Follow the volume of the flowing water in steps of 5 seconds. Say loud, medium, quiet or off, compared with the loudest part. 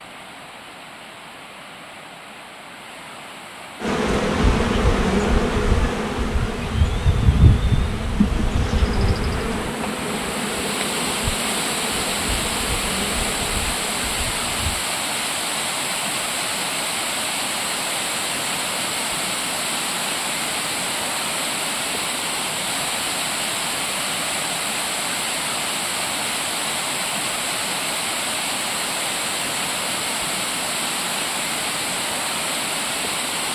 quiet, medium, loud, loud, loud, loud, loud.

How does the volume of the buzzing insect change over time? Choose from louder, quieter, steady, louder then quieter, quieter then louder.
quieter.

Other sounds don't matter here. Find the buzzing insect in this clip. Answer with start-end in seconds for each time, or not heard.
3.8-14.8.